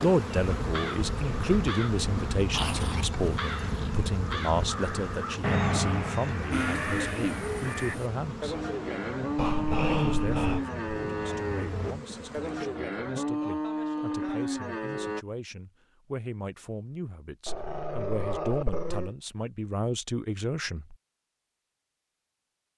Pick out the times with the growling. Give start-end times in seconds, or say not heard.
2.5-3.9, 9.3-10.7, 17.4-19.1.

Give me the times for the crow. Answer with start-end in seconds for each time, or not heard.
0.3-8.0.